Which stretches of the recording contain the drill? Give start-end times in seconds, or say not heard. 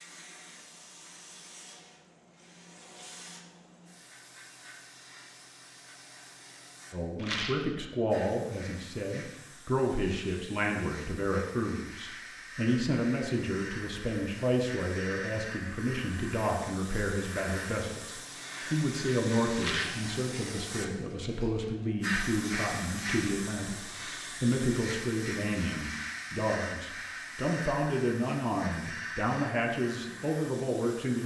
not heard.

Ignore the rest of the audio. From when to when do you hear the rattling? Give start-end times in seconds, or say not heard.
7.2-7.7, 19.6-20.1.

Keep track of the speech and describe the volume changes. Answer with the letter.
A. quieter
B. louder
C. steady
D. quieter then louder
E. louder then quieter
C.